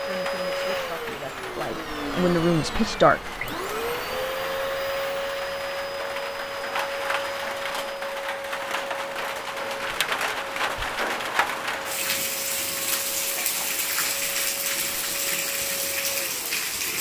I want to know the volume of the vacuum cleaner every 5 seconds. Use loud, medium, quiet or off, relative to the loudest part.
loud, loud, medium, medium.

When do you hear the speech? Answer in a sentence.
You can hear the speech from 0.0 to 3.5 s.